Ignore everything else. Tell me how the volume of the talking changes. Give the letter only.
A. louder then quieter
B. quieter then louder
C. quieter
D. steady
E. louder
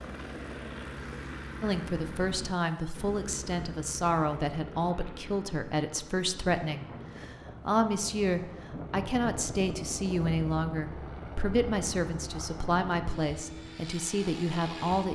D.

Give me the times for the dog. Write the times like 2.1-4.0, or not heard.
not heard.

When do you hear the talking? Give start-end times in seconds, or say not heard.
1.6-15.1.